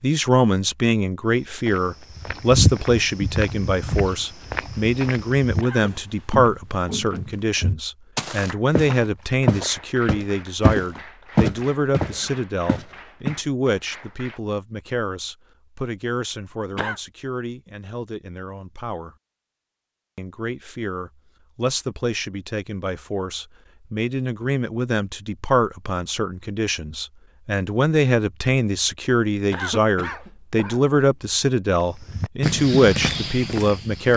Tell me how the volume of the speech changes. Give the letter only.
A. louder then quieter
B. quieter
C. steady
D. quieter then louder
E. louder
D.